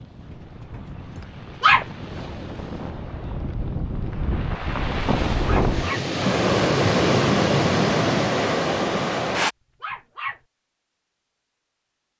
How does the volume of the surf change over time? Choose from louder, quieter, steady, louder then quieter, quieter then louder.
louder.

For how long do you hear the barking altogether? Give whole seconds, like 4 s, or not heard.
3 s.